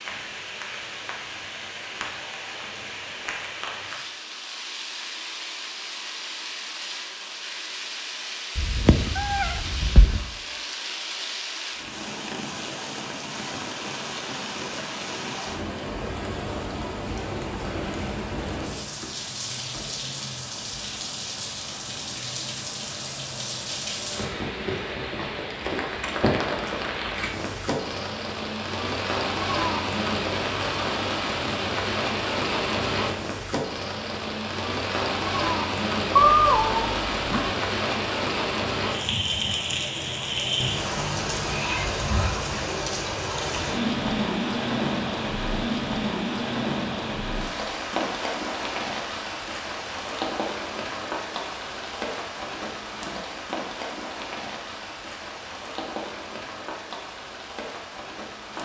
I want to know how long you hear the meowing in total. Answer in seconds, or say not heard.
5 s.